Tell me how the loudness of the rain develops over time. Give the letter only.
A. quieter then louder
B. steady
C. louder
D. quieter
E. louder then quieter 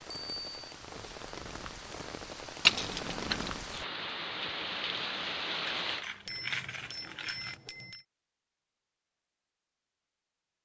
C.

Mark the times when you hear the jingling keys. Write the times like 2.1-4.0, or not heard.
2.6-3.5, 5.8-7.6.